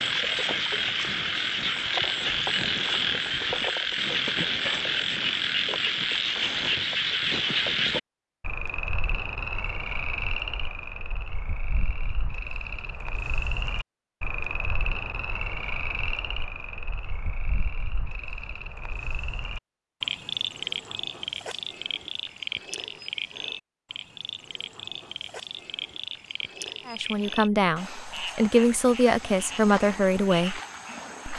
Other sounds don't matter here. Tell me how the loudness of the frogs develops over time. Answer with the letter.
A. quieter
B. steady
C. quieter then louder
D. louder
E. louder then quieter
A.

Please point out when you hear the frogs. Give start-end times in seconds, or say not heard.
0.0-31.3.